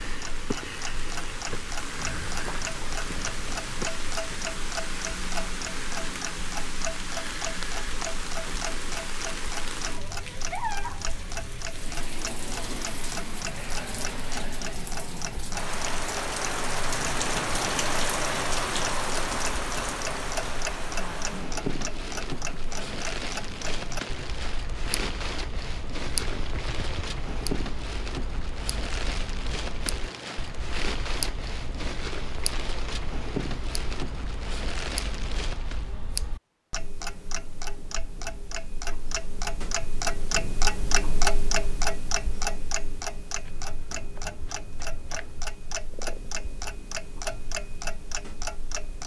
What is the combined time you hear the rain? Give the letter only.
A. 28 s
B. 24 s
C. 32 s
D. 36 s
D.